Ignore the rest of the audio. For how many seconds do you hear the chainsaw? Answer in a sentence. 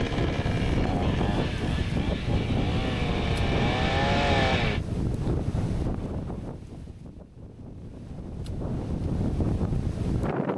The chainsaw can be heard for 5 seconds in total.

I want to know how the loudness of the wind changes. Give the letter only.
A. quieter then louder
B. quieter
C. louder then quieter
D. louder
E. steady
A.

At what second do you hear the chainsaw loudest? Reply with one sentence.
The loudest moment of the chainsaw is at 4 seconds.